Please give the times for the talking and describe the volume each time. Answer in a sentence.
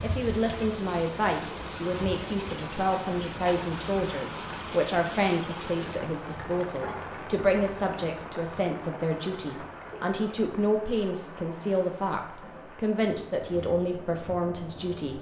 The talking can be heard from 0.0 to 15.1 s, at a steady volume.